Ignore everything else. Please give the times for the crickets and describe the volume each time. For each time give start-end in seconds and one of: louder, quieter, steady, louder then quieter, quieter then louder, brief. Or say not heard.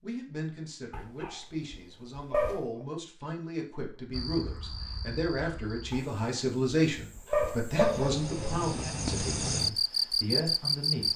4.1-11.1 quieter then louder.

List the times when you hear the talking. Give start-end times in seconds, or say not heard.
0.0-11.1.